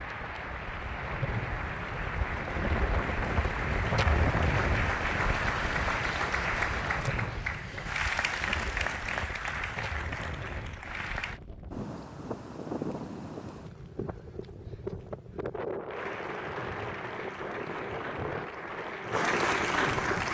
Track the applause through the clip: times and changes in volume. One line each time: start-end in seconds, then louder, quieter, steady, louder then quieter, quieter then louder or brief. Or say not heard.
0.0-11.4 louder then quieter
15.9-20.3 louder.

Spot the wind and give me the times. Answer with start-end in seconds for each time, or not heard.
0.0-20.3.